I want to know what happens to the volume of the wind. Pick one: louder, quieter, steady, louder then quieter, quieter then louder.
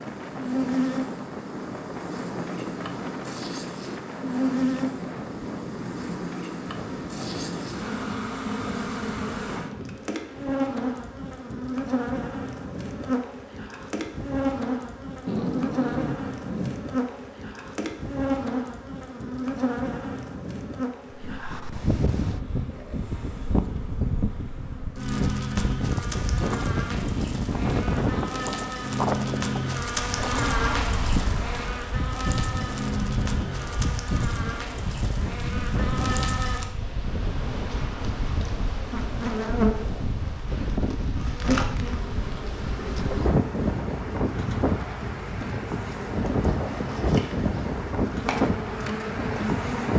louder.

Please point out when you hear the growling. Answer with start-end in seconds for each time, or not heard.
15.2-16.8, 30.2-30.9.